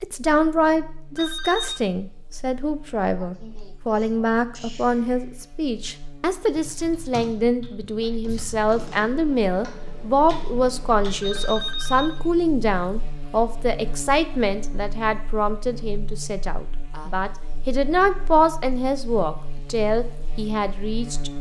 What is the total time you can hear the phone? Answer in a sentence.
The phone can be heard for 2 seconds in total.